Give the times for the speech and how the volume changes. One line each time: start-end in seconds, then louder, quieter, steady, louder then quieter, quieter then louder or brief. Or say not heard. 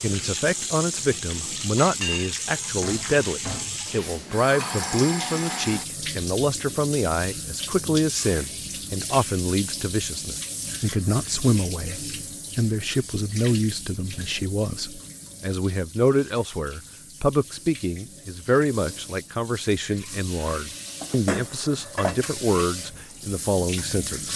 0.0-24.3 steady.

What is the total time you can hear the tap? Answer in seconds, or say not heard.
24 s.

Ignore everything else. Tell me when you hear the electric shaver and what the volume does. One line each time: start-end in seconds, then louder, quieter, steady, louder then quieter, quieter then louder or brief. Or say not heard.
not heard.